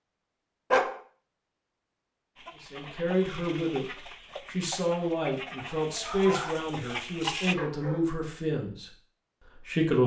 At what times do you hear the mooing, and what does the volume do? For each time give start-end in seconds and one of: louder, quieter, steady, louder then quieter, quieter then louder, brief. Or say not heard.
not heard.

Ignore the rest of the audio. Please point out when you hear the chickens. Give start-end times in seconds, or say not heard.
2.4-7.5.